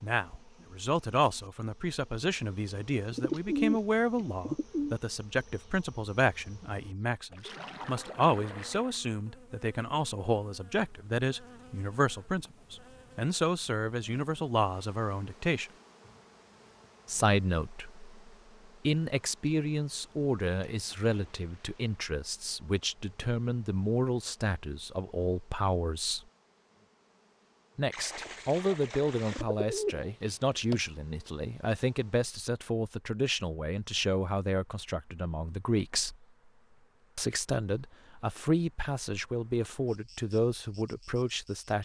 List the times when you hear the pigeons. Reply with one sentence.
The pigeons can be heard from 3.1 to 5.0 s and from 29.3 to 30.8 s.